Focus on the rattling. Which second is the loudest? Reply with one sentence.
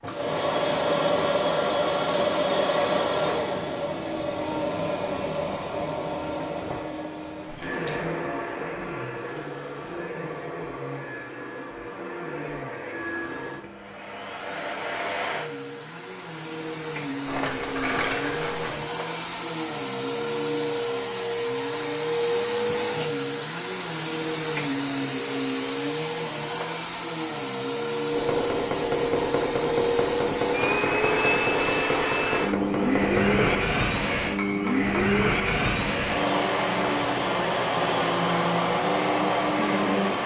The volume of the rattling peaks at 18 seconds.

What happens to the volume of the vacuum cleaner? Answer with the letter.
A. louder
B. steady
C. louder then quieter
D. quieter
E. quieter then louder
E.